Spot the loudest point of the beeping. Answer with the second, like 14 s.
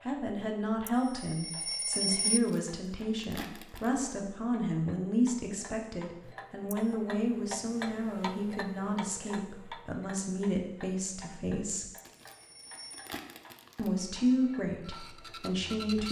2 s.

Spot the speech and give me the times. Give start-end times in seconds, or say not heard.
0.1-11.8, 13.8-16.0.